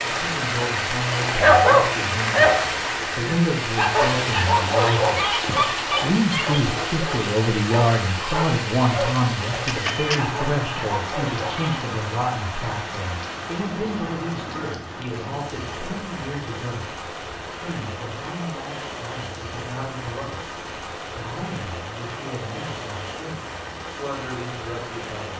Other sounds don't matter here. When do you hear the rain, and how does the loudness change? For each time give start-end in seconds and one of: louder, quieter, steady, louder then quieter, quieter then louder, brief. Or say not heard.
0.0-25.3 quieter.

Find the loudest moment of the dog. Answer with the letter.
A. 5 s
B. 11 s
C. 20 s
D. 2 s
D.